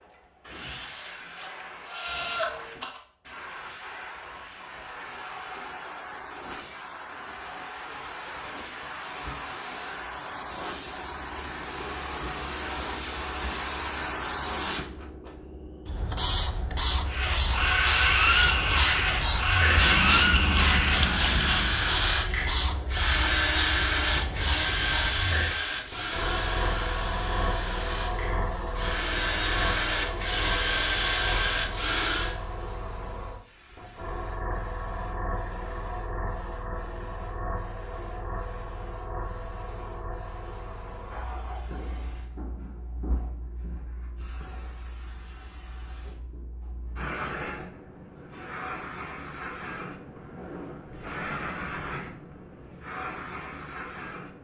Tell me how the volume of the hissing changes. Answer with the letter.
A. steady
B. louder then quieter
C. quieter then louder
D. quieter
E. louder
B.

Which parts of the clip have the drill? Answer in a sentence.
The drill can be heard from 0.0 to 3.0 s and from 17.1 to 32.4 s.